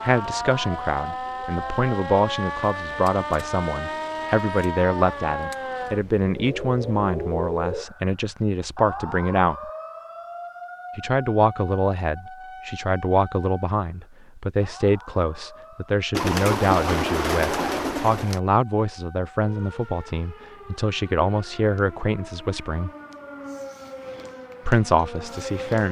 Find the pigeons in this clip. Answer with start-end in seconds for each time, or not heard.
16.1-18.4.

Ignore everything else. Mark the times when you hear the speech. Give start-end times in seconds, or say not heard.
0.0-9.7, 10.9-22.9, 24.6-25.8.